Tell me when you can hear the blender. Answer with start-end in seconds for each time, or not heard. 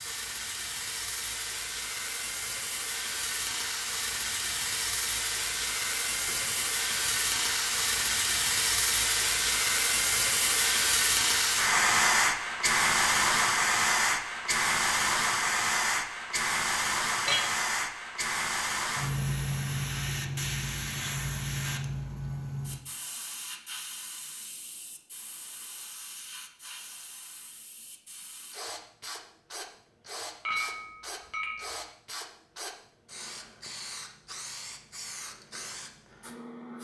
not heard.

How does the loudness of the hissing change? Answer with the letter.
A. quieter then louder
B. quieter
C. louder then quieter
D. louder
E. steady
C.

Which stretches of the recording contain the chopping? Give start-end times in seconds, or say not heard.
not heard.